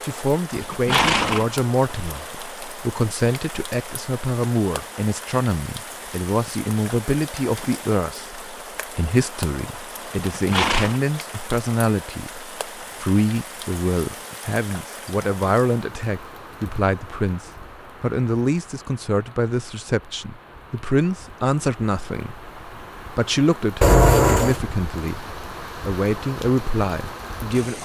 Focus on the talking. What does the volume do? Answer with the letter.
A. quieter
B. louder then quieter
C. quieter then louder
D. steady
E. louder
D.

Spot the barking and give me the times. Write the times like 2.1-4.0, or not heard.
not heard.